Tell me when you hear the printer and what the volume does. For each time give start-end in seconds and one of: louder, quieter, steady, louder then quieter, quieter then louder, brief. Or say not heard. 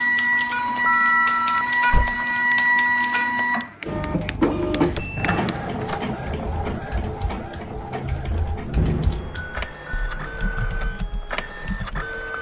0.0-12.3 quieter.